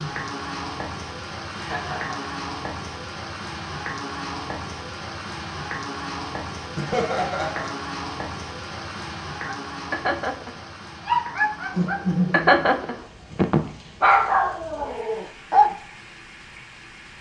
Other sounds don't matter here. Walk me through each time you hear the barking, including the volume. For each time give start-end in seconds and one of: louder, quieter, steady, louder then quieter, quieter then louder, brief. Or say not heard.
9.4-15.7 louder then quieter.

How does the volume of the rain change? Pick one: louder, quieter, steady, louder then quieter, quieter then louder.
quieter.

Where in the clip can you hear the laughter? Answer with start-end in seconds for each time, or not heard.
1.6-2.3, 6.8-7.8, 11.7-13.1.